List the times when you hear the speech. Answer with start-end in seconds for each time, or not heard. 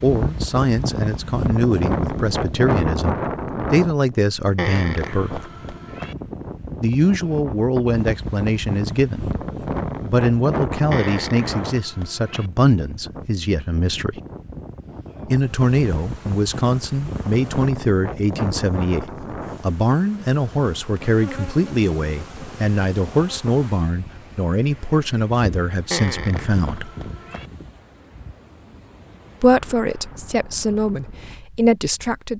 0.0-5.5, 6.8-9.4, 10.0-14.2, 15.3-26.9, 29.4-32.3.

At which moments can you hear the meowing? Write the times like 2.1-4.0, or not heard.
4.5-6.2, 10.9-12.5, 25.9-27.5.